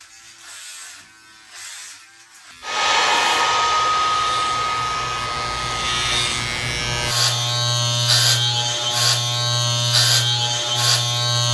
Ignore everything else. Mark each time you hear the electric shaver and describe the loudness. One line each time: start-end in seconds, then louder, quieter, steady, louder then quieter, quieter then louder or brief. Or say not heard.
0.0-11.4 louder.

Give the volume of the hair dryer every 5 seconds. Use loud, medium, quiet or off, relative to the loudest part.
loud, medium, off.